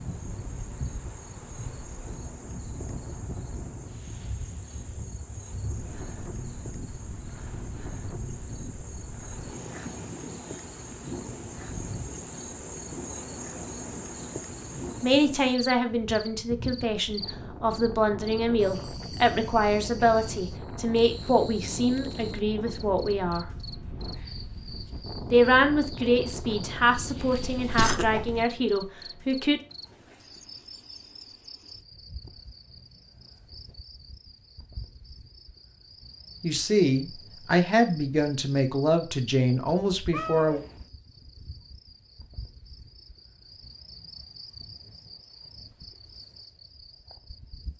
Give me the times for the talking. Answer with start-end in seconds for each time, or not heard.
15.0-23.4, 25.3-29.6, 36.4-40.6.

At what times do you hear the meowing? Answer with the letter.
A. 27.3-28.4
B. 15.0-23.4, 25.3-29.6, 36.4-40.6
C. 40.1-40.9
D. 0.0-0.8
C.